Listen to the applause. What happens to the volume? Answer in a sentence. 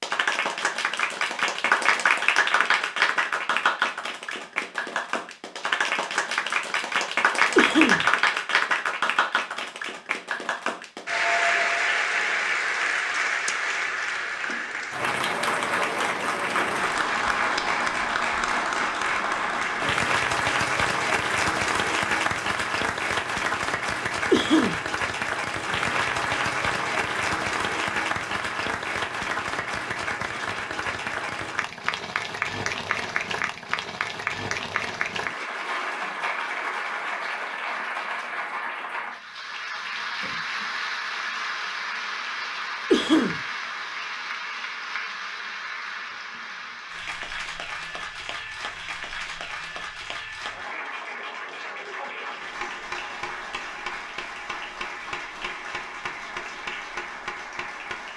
The volume of the applause goes down.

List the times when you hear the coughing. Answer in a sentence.
You can hear the coughing from 7.5 to 8.1 s, from 24.3 to 24.8 s and from 42.9 to 43.4 s.